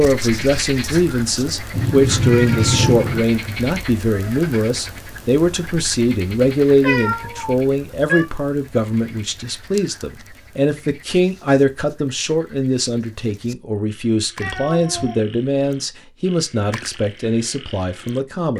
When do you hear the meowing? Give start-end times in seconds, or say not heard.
1.7-3.2, 6.8-8.2, 14.4-15.2.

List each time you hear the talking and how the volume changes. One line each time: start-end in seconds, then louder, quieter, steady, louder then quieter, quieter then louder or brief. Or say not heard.
0.0-18.5 steady.